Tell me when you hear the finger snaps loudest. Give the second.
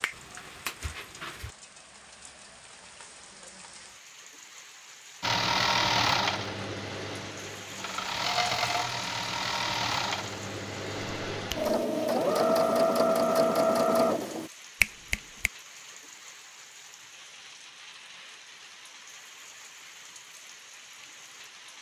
15 s.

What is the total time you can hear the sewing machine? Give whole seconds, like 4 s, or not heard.
9 s.